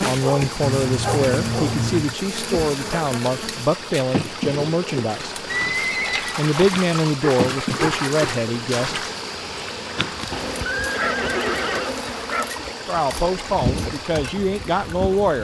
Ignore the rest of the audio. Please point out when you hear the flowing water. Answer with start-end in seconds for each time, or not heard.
0.0-15.3.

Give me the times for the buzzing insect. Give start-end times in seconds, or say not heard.
0.0-15.3.